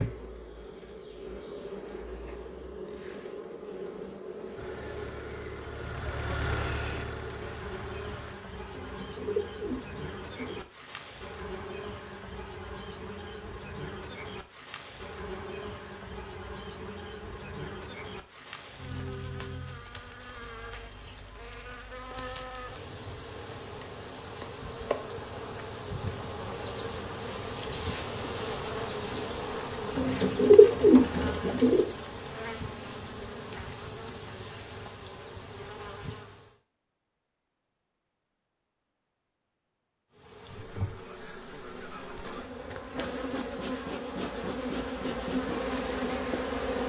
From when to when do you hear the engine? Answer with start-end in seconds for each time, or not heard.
4.5-8.3.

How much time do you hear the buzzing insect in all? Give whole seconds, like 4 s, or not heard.
43 s.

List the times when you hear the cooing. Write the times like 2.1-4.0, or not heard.
8.7-10.6, 29.9-31.9.